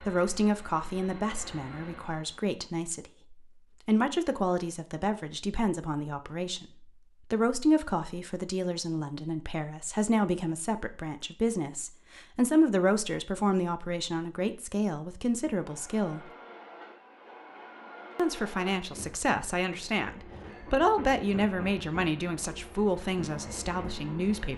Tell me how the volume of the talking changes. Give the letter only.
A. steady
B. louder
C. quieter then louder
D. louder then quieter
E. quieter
A.